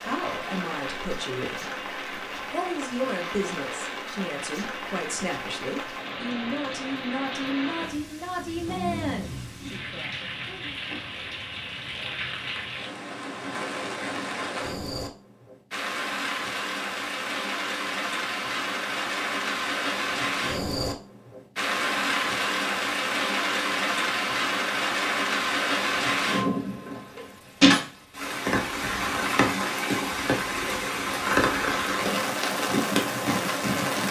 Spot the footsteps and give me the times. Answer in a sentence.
The footsteps can't be heard in this clip.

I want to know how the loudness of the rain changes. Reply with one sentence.
The loudness of the rain goes up.